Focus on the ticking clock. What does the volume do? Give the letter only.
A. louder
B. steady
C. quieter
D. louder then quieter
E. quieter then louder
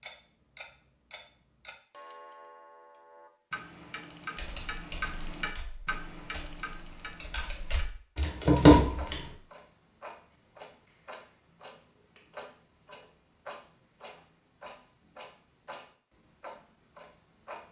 D.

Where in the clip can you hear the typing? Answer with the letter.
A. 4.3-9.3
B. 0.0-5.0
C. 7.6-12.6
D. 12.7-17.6
A.